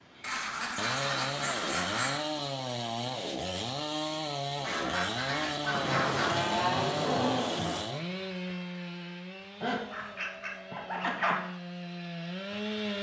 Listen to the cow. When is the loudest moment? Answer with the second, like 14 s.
7 s.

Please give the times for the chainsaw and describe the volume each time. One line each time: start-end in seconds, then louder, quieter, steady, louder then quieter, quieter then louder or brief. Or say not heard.
0.0-12.9 quieter.